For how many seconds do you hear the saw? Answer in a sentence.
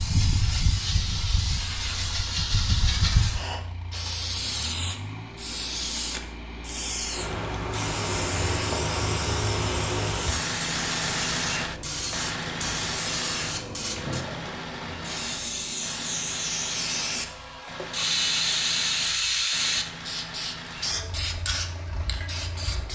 The saw can't be heard in this clip.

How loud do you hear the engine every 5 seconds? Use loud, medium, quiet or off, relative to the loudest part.
quiet, medium, loud, medium, medium.